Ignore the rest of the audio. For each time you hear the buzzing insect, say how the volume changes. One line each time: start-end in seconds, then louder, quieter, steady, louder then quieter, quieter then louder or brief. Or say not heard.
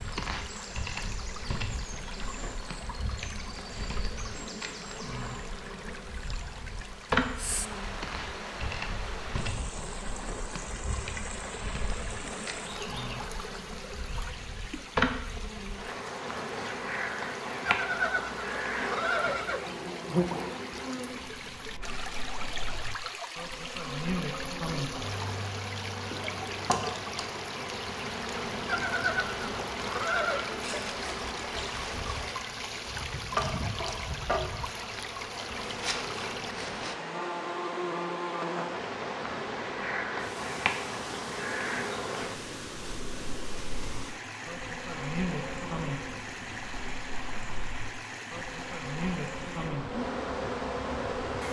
0.0-51.4 steady.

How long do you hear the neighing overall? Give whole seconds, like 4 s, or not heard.
4 s.